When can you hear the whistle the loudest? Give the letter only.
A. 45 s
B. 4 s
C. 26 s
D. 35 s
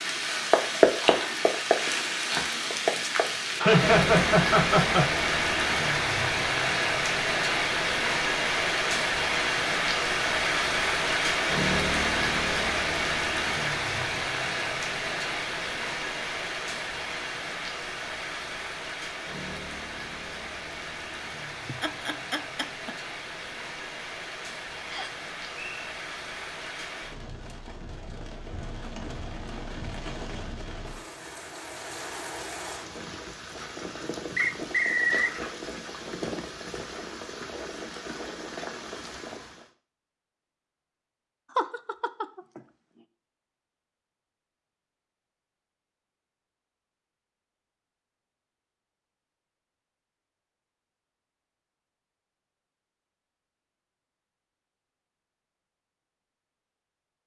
D.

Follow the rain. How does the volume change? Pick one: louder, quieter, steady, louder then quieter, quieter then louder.
quieter.